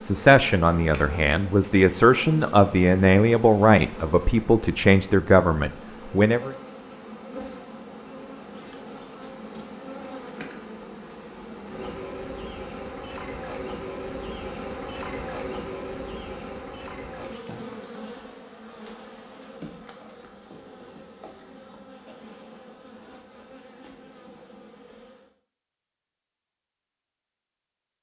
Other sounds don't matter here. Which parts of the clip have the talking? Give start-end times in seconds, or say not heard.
0.0-6.5.